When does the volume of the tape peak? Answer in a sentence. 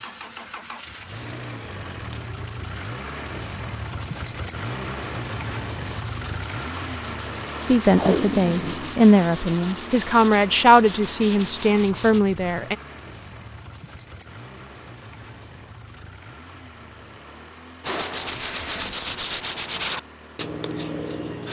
The loudest moment of the tape is at 8 seconds.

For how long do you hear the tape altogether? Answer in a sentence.
You can hear the tape for 3 seconds altogether.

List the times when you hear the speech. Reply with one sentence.
You can hear the speech from 7.7 to 12.8 s.